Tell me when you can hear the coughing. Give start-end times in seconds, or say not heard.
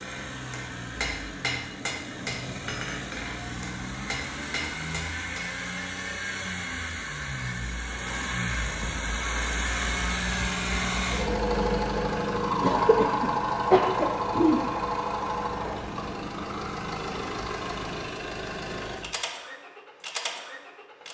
12.6-14.7.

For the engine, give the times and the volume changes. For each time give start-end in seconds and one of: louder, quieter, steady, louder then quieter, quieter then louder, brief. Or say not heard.
0.0-21.0 louder then quieter.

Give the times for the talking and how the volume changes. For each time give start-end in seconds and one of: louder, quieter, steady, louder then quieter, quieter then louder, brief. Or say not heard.
not heard.